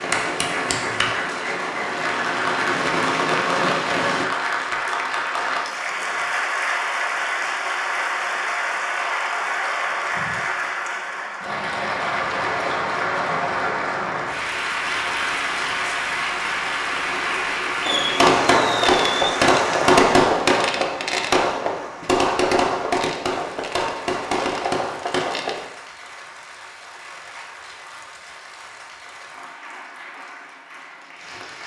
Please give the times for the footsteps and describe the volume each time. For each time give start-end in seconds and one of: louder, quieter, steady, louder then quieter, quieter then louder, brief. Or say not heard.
not heard.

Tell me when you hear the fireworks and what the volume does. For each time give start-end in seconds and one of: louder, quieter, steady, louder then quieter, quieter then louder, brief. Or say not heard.
0.0-4.3 louder
17.9-25.6 quieter.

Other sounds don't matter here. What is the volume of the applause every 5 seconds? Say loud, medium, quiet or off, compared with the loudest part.
loud, loud, loud, loud, quiet, quiet, quiet.